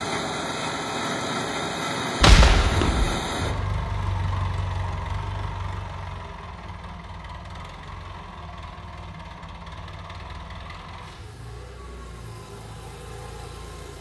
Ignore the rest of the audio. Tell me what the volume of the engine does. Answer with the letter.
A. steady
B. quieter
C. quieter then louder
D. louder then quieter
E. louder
B.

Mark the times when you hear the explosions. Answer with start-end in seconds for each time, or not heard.
2.2-3.3.